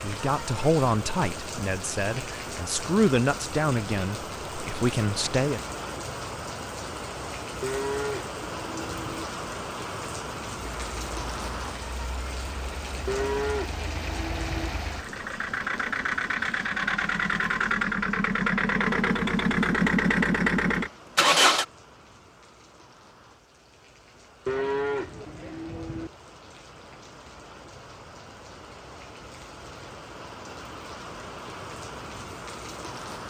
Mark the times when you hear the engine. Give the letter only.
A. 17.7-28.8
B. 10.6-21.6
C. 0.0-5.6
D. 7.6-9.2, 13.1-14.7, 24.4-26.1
B.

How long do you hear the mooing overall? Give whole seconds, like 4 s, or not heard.
5 s.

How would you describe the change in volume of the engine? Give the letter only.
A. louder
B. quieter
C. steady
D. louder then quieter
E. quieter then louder
A.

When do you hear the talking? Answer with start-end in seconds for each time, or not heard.
0.0-5.6.